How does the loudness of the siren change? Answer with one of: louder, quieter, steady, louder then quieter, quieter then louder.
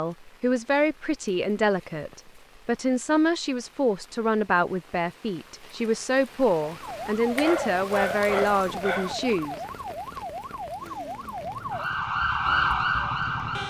louder.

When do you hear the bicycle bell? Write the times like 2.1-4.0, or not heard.
not heard.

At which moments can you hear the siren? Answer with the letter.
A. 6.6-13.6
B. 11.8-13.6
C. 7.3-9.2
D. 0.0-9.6
A.